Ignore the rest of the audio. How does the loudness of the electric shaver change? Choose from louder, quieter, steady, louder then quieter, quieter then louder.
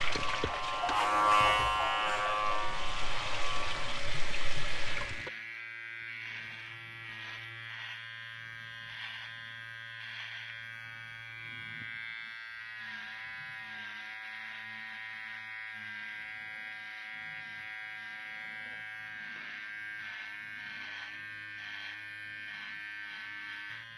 quieter.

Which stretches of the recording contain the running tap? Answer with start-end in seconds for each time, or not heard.
0.0-5.3.